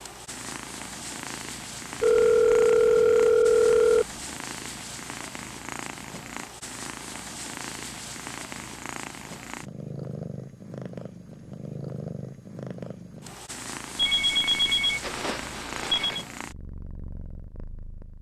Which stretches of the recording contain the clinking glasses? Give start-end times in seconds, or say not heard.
not heard.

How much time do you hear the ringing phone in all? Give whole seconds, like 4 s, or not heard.
4 s.